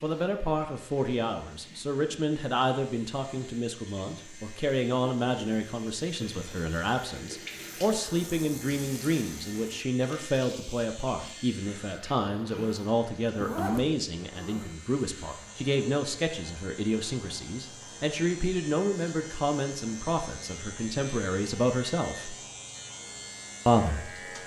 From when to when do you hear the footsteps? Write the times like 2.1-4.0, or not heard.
not heard.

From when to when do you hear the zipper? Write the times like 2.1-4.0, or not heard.
12.3-14.7.